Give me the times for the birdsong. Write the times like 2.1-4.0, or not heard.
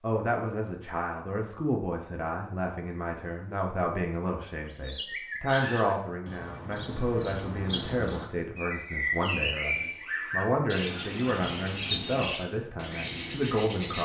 4.7-14.0.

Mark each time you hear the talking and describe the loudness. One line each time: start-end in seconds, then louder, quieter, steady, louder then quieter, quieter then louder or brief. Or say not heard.
0.0-14.0 steady.